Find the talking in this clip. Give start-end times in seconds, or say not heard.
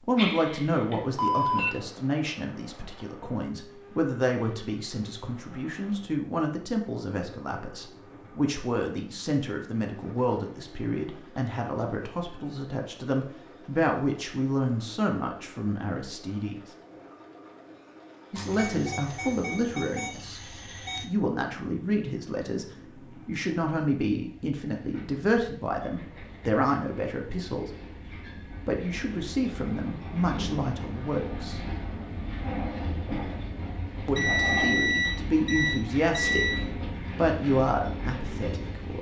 0.1-16.7, 18.3-27.8, 28.6-31.6, 34.0-38.9.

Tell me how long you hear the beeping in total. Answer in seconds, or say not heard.
7 s.